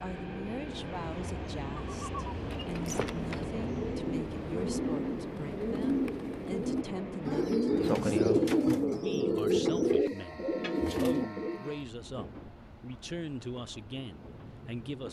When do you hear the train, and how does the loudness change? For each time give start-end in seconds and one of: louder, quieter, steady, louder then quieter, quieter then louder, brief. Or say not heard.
0.0-15.0 quieter.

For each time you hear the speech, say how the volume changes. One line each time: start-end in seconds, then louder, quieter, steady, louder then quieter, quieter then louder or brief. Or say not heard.
0.0-15.0 steady.